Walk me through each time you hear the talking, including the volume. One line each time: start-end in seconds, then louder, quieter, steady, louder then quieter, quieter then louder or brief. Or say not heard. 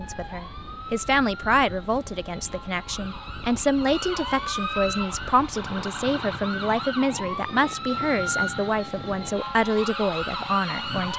0.0-11.1 steady.